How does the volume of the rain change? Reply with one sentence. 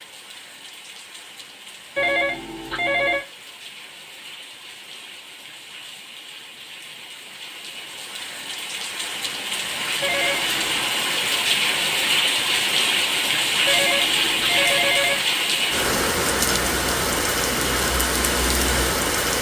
The loudness of the rain goes up.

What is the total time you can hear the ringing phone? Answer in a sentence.
You can hear the ringing phone for 4 seconds altogether.